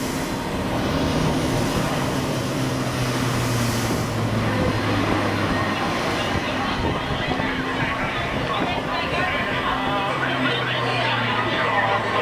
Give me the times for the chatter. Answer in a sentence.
You can hear the chatter from 4.5 to 12.1 s.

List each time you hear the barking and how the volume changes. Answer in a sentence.
You can't hear the barking here.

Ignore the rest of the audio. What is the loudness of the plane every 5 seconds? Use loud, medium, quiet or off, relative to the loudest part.
loud, loud, medium.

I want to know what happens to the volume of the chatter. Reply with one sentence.
The volume of the chatter goes up.